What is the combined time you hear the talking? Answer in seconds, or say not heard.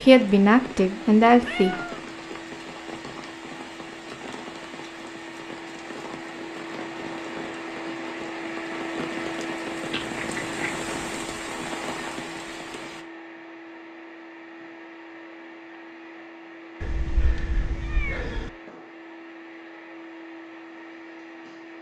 2 s.